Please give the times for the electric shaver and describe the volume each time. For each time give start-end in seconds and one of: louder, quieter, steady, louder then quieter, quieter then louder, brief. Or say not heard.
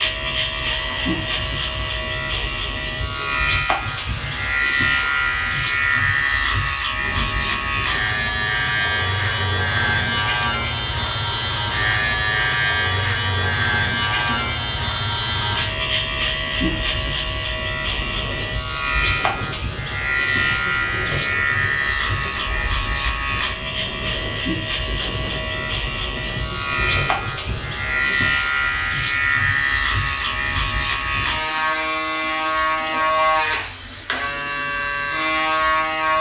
0.0-36.1 steady.